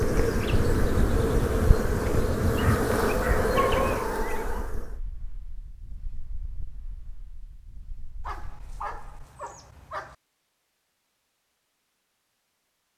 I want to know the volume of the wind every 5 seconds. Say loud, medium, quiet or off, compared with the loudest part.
loud, quiet, off.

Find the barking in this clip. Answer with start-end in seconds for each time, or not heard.
2.5-4.7, 8.2-10.2.